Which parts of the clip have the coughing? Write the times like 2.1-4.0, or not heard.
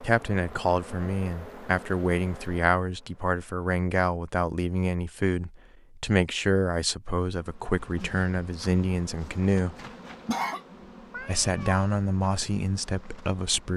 9.8-10.6.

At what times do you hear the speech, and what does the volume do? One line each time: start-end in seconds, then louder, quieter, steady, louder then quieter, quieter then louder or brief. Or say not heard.
0.0-9.8 steady
11.2-13.7 brief.